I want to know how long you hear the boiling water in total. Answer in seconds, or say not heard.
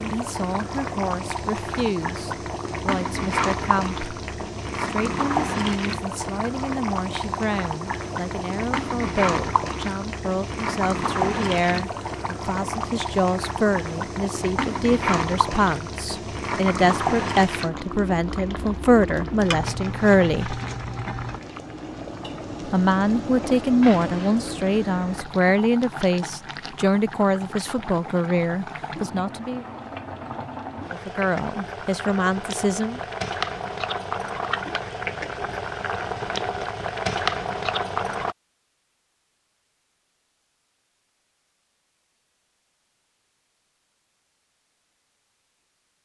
38 s.